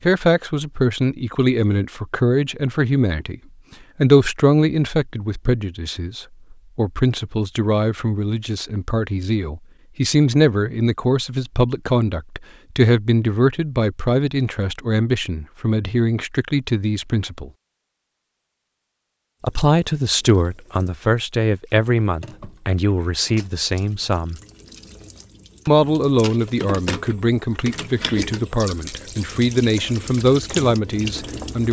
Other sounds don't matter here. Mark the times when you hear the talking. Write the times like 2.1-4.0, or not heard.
0.0-3.4, 4.0-17.5, 19.4-24.4, 25.6-31.6.